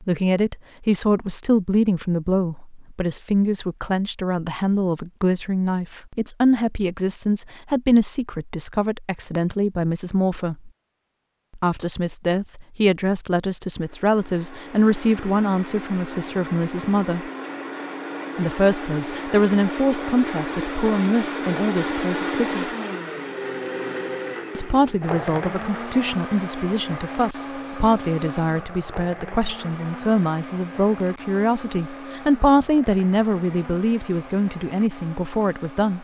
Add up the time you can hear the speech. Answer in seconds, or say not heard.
32 s.